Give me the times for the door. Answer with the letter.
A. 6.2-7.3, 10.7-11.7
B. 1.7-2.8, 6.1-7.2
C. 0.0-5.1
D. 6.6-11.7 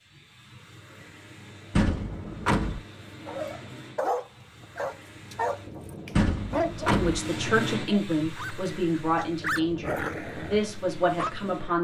B.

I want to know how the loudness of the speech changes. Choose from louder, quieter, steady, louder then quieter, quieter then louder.
steady.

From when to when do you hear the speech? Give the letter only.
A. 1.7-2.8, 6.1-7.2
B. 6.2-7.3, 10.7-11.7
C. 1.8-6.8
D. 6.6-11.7
D.